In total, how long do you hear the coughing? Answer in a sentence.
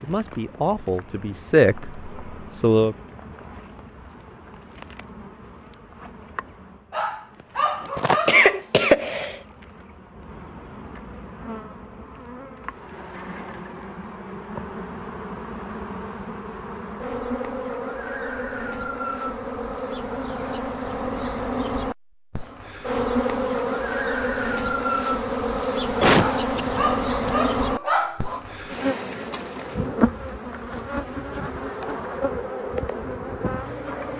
You can hear the coughing for 3 seconds altogether.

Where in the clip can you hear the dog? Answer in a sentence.
The dog can be heard from 6.9 to 8.6 s and from 26.1 to 28.4 s.